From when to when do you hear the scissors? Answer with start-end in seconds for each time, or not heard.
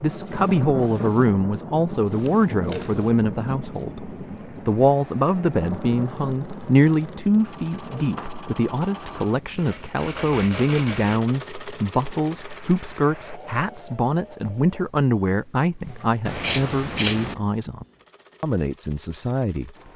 2.2-2.9, 7.7-8.3, 16.2-17.4.